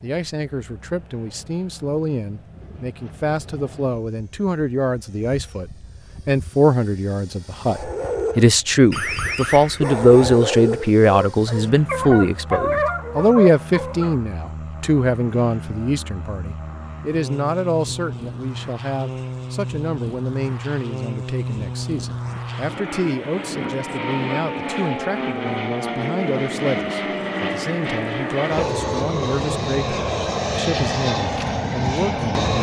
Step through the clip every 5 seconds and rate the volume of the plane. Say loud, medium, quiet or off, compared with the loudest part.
quiet, quiet, quiet, medium, medium, loud, loud.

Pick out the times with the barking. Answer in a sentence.
The barking can be heard from 7.7 to 14.2 s.